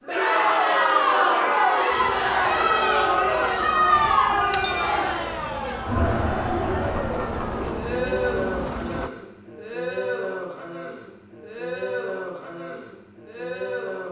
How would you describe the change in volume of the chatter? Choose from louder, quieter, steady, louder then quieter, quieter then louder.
quieter.